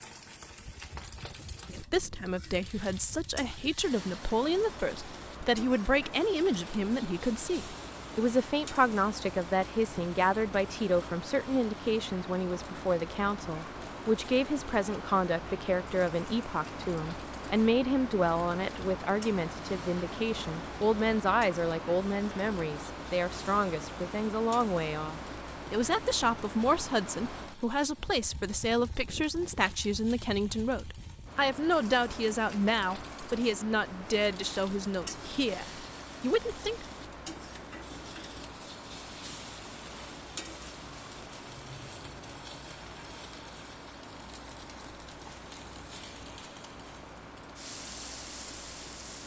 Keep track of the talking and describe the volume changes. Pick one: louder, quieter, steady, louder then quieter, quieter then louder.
steady.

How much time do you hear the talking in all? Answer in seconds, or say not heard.
35 s.